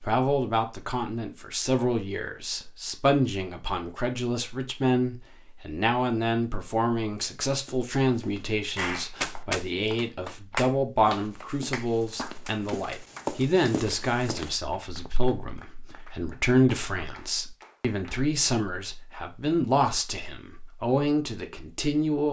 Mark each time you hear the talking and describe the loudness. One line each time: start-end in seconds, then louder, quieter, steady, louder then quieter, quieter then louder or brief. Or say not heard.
0.0-22.2 steady.